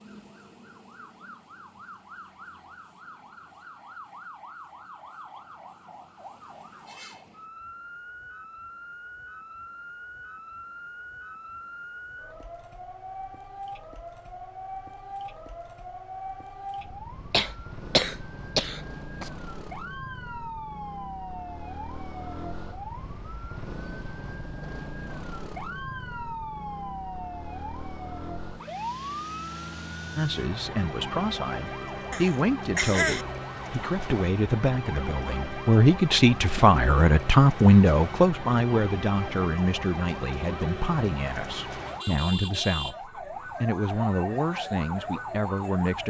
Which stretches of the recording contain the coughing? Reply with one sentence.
You can hear the coughing from 17.3 to 19.3 s and from 32.1 to 33.2 s.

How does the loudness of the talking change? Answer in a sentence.
The loudness of the talking goes up, then down.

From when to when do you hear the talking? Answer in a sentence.
The talking can be heard from 30.1 to 46.0 s.